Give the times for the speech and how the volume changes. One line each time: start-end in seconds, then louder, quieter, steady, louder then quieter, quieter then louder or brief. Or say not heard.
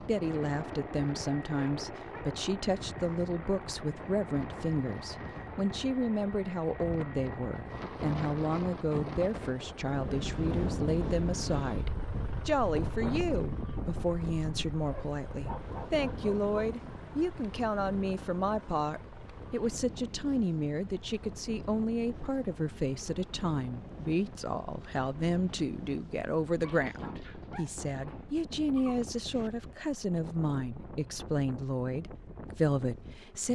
0.0-33.5 steady.